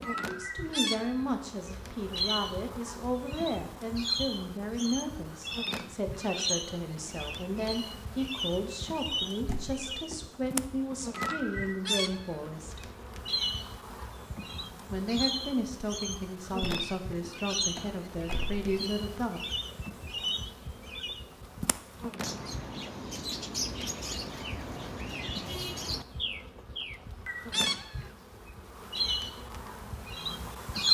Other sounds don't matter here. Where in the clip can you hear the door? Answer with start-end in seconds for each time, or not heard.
9.4-10.2, 16.6-18.6.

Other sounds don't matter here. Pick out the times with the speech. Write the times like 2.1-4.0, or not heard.
0.0-12.9, 14.9-19.4.